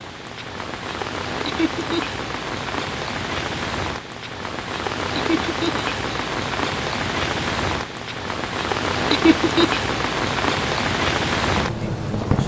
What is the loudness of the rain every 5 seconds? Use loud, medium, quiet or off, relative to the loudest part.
medium, loud, loud.